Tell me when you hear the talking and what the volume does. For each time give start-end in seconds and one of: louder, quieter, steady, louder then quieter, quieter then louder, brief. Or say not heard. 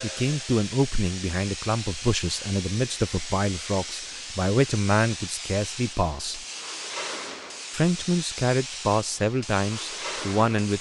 0.0-6.5 steady
7.7-10.7 brief.